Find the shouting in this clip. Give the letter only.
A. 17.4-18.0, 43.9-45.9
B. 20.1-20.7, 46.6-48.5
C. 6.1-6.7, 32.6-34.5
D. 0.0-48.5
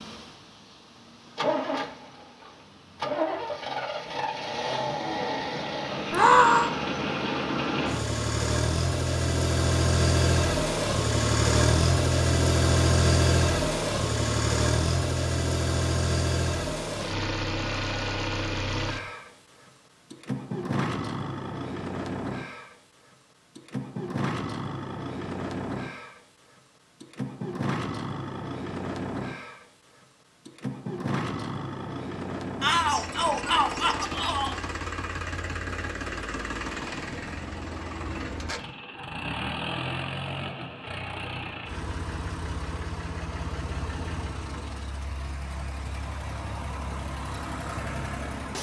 C.